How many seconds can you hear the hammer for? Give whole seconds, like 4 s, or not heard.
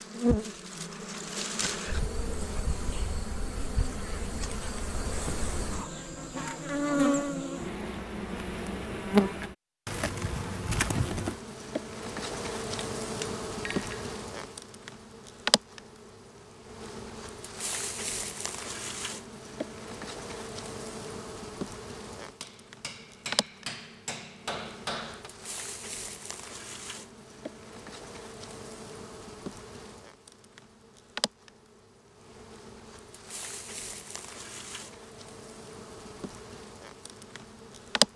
4 s.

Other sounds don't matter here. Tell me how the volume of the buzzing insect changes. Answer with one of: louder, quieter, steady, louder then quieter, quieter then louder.
quieter.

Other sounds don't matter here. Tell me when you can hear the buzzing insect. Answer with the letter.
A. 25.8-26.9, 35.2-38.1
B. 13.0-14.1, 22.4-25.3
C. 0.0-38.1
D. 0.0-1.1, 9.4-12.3
C.